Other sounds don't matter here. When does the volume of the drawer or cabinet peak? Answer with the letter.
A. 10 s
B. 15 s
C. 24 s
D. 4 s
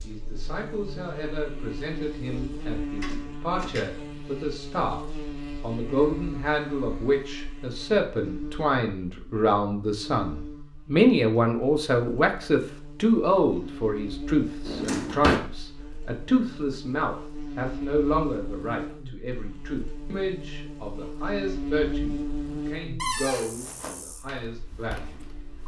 B.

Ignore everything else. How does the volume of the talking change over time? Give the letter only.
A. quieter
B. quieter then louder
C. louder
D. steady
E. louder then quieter
E.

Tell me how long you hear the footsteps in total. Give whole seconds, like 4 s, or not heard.
2 s.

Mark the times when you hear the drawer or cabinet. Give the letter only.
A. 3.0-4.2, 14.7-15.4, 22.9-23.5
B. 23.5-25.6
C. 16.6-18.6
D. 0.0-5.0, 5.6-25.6
A.